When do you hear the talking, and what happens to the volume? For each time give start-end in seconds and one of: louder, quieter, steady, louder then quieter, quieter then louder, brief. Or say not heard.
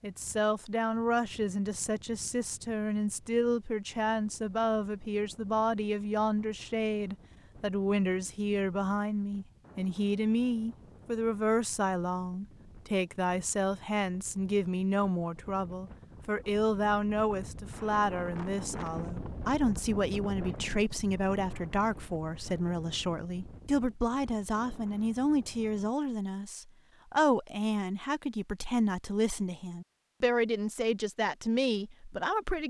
0.0-32.6 steady.